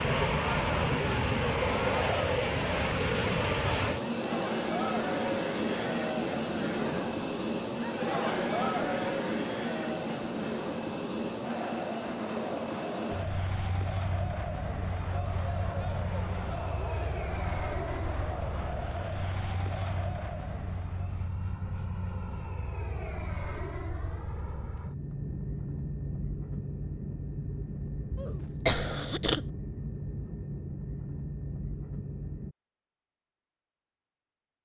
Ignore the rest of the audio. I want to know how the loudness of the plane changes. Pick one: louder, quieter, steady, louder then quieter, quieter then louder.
quieter.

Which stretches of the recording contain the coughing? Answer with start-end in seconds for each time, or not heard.
28.1-29.4.